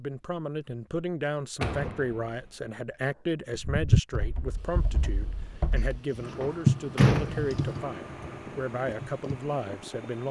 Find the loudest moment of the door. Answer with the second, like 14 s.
7 s.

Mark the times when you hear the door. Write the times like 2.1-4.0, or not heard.
1.6-2.5, 5.8-7.5.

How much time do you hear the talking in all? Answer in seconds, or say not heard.
10 s.